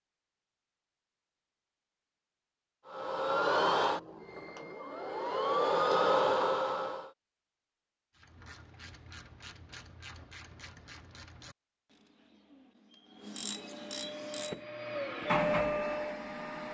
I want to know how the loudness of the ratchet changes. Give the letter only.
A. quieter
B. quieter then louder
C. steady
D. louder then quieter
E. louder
B.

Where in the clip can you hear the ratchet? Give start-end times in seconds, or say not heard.
8.2-14.6.